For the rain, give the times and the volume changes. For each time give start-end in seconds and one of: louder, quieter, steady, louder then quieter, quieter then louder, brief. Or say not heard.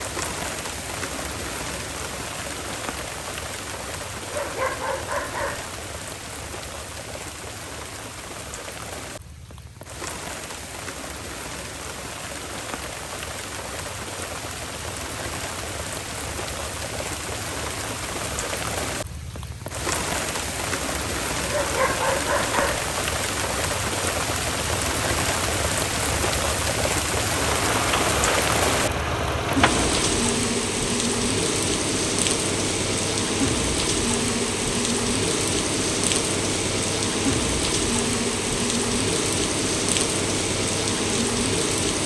0.0-42.0 louder.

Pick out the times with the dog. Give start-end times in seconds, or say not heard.
4.3-5.7, 21.4-22.9.